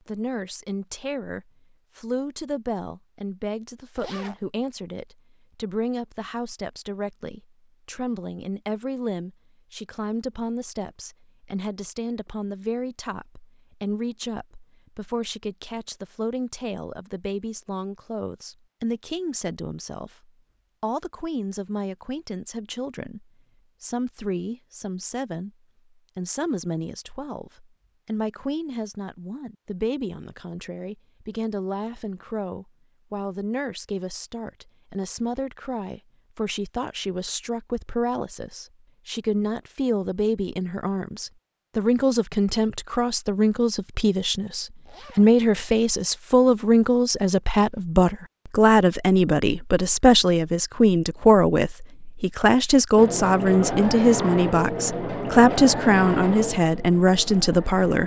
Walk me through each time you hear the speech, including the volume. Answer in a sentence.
You can hear the speech from 0.1 to 25.5 s, at a steady volume; and from 26.1 to 58.0 s, getting louder.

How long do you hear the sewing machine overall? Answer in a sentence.
The sewing machine can be heard for 5 seconds in total.